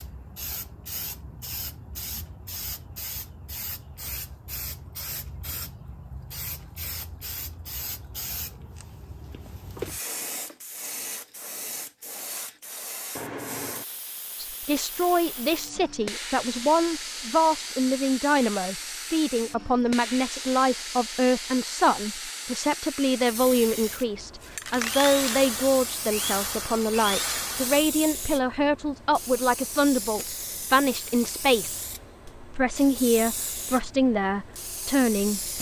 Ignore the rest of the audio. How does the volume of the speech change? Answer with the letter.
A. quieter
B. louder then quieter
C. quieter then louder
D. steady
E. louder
D.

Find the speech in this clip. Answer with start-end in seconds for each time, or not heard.
14.3-35.5.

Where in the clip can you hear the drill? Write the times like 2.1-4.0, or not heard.
24.7-27.9.